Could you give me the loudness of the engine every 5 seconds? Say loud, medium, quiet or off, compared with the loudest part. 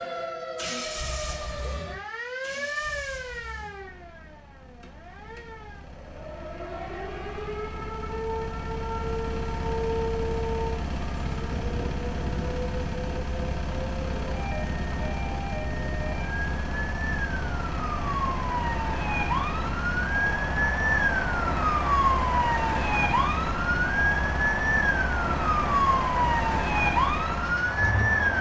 medium, medium, loud, loud, loud, loud.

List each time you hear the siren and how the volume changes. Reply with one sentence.
The siren can be heard from 0.0 to 28.3 s, getting louder.